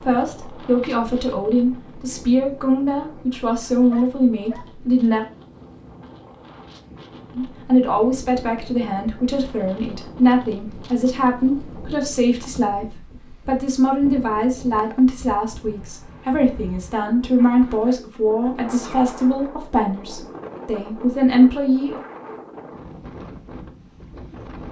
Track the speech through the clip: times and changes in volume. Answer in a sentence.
You can hear the speech from 0.0 to 5.2 s, at a steady volume; and from 7.3 to 22.0 s, at a steady volume.